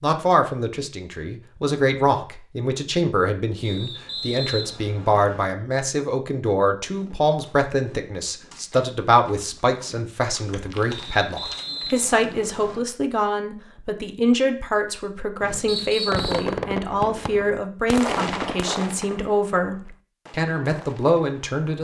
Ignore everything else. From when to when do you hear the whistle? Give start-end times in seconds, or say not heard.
3.6-5.5, 11.2-12.8, 15.7-16.5.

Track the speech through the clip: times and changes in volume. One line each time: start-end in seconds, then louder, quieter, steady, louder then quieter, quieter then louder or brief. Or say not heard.
0.0-21.7 steady.